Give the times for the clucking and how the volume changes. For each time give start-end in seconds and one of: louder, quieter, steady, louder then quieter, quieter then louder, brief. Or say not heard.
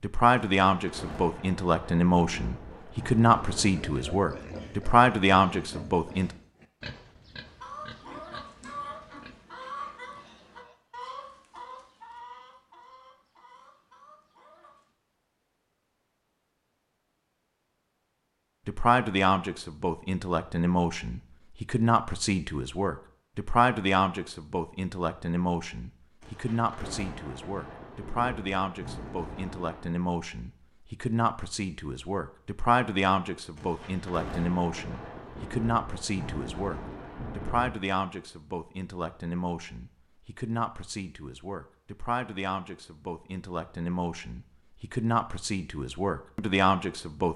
7.5-14.9 quieter.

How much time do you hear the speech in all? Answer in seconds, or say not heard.
35 s.